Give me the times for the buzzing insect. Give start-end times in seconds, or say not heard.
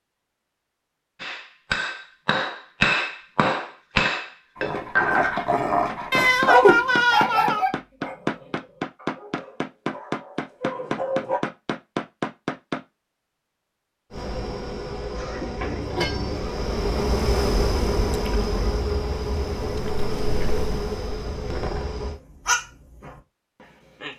14.1-22.2.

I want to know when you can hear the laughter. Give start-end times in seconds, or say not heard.
15.2-15.8.